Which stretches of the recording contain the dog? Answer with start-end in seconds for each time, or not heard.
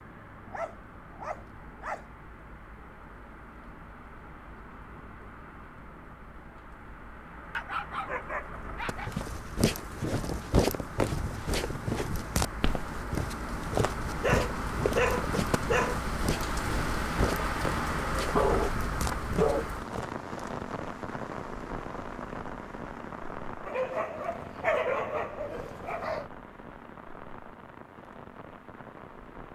0.5-2.0, 7.5-9.1, 14.2-16.0, 18.4-19.7, 23.6-26.2.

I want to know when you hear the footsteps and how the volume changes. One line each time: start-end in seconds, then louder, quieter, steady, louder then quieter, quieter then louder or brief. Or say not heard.
8.8-20.1 quieter.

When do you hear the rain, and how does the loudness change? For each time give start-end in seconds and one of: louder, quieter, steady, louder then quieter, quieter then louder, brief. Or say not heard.
0.0-29.5 louder then quieter.